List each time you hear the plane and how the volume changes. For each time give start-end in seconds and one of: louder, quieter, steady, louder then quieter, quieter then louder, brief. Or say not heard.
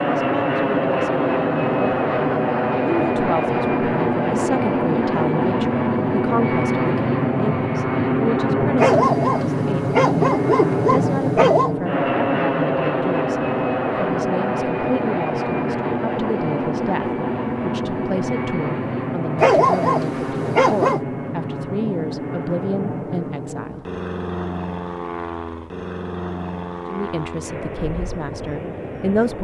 0.0-29.3 quieter.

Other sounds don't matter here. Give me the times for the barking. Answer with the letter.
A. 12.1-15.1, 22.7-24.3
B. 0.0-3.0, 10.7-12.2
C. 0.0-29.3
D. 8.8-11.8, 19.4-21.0
D.